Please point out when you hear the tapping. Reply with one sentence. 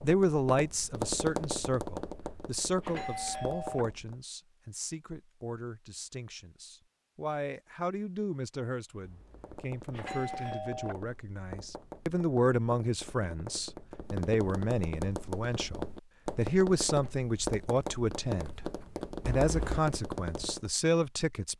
You can hear the tapping from 0.0 to 4.2 s and from 9.3 to 20.7 s.